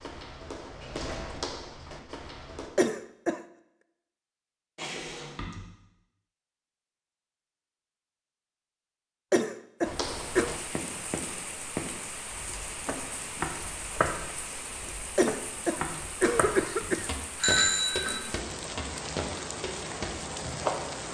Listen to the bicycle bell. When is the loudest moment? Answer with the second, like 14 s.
18 s.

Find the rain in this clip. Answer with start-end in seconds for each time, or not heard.
10.0-21.0.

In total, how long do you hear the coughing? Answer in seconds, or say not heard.
4 s.